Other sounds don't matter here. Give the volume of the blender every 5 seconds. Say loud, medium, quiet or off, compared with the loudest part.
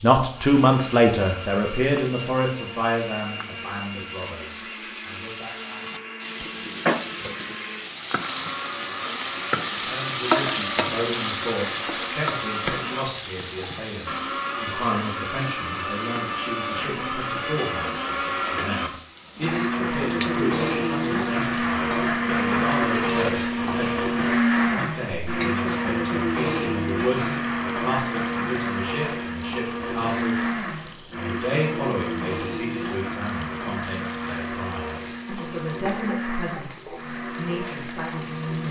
quiet, quiet, medium, medium, loud, loud, medium, medium.